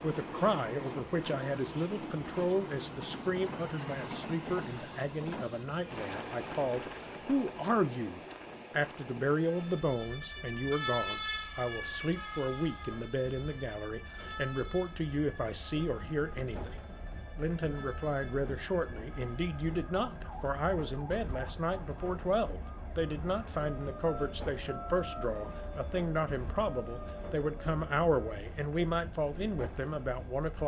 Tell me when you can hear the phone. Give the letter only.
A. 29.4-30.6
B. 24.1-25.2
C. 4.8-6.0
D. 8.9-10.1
B.